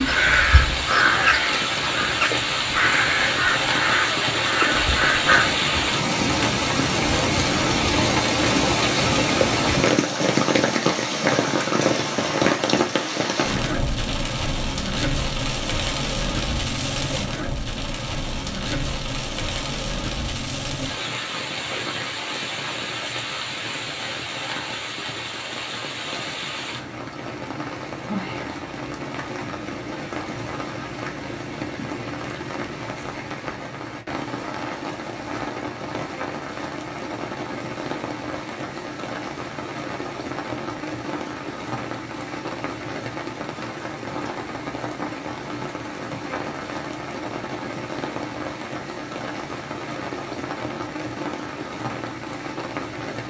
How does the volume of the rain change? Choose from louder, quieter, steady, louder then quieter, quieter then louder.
quieter.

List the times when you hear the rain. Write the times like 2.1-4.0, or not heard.
0.0-53.2.